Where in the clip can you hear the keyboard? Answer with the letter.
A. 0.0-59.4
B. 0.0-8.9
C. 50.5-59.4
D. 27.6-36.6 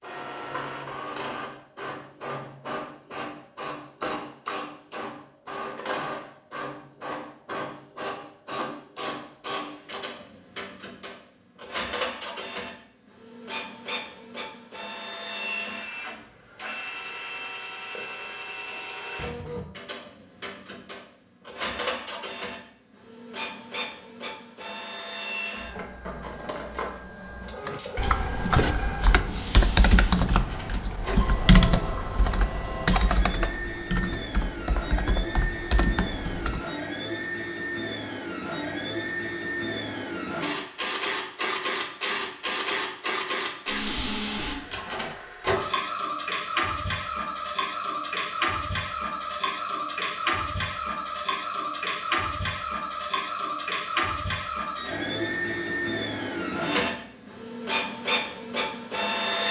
D.